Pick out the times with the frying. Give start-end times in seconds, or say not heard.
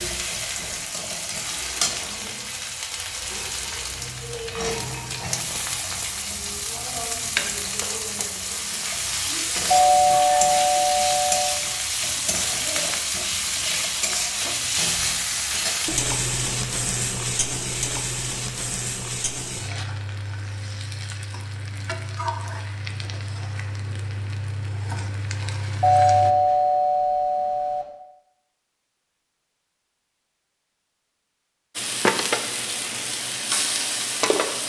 0.0-26.4, 31.8-34.6.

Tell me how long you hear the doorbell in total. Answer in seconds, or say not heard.
4 s.